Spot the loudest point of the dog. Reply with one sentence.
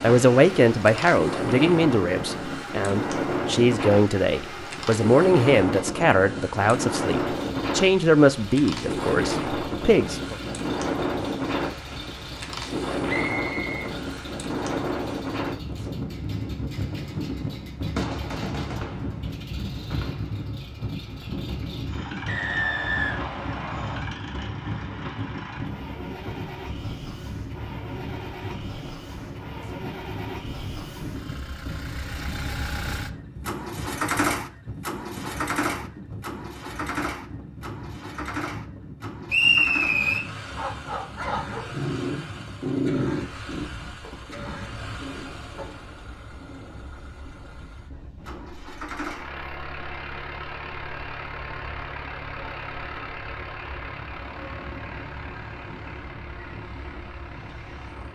The loudest moment of the dog is at 43 seconds.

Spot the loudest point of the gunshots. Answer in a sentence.
The volume of the gunshots peaks at 18 seconds.